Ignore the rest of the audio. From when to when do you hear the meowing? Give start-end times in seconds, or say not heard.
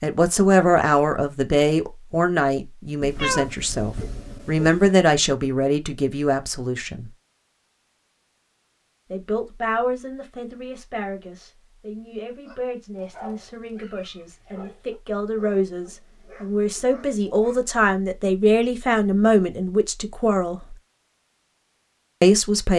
3.0-4.9.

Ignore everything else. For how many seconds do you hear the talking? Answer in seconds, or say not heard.
19 s.